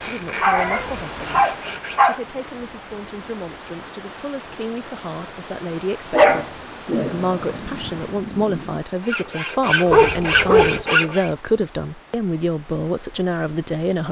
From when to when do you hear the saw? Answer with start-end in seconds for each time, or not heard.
0.0-2.2, 9.0-11.3.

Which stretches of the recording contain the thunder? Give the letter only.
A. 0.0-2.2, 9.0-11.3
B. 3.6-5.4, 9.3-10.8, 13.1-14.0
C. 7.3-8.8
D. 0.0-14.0
C.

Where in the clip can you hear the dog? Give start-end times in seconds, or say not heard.
0.4-2.2, 6.1-7.6, 9.9-10.8.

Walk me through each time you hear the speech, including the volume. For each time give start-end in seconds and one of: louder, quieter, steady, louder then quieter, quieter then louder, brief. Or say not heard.
0.0-14.0 louder.